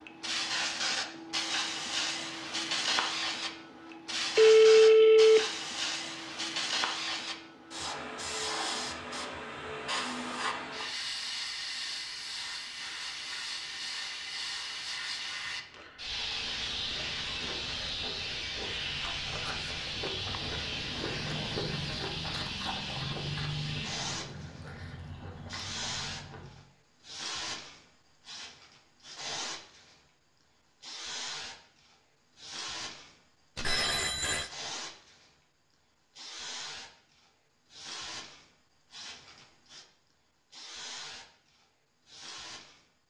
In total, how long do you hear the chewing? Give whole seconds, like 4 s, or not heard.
10 s.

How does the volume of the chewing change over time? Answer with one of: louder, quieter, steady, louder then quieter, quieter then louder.
louder then quieter.